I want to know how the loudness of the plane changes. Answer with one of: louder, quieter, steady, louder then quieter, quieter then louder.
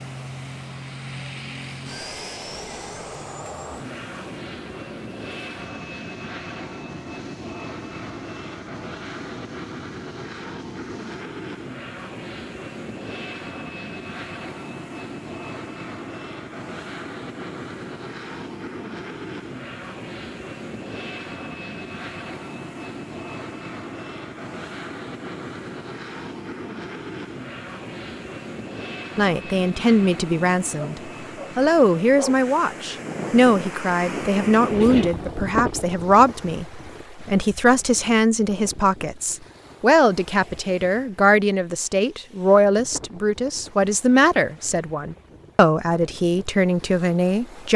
steady.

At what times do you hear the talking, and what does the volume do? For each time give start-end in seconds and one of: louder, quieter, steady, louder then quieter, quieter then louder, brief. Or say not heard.
29.1-47.7 steady.